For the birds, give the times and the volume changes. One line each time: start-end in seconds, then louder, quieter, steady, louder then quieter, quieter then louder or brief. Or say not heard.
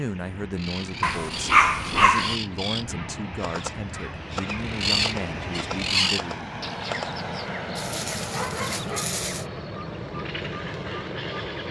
0.0-11.6 louder then quieter.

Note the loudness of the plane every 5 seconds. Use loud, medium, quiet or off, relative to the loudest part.
medium, loud, loud.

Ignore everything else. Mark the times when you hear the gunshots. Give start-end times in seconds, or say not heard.
3.4-7.2.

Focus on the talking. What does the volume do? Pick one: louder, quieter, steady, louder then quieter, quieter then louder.
steady.